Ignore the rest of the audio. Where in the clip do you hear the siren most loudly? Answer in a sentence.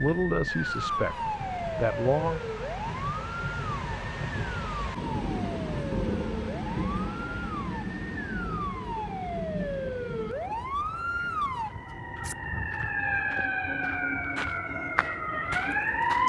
The volume of the siren peaks at 16 seconds.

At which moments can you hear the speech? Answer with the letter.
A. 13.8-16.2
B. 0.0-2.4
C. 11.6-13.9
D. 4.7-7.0
B.